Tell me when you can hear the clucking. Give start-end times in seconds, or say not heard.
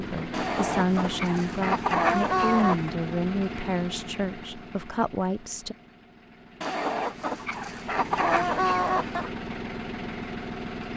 0.3-2.9, 6.6-9.3.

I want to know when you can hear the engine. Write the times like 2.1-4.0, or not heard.
0.0-10.9.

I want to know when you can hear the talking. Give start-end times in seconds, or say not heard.
0.0-5.8.